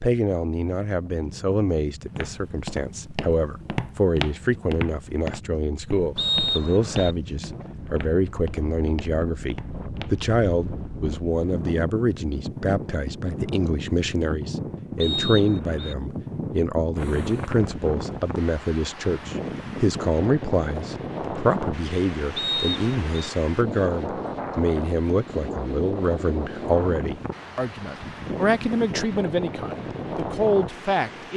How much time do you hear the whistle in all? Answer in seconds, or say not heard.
3 s.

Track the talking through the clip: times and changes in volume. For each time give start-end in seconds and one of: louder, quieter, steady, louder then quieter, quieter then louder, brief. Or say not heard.
0.0-31.3 steady.